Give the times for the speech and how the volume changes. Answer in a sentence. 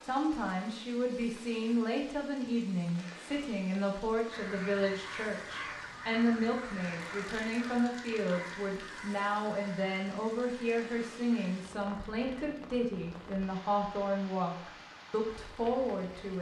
You can hear the speech from 0.0 to 16.3 s, at a steady volume.